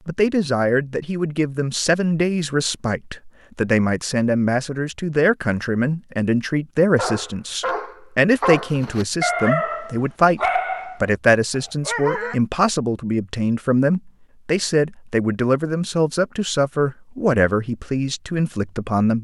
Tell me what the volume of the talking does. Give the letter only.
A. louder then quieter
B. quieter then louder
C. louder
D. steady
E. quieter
D.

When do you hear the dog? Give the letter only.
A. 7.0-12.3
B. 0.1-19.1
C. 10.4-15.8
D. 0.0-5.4
A.